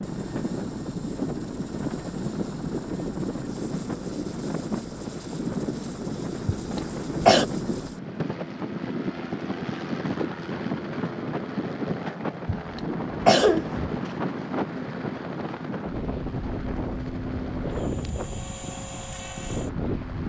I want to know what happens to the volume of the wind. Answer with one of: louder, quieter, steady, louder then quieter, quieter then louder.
steady.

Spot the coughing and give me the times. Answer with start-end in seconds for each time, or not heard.
6.5-7.5, 12.4-13.9.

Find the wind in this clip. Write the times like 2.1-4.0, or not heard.
0.0-20.2.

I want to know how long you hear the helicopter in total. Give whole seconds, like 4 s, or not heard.
20 s.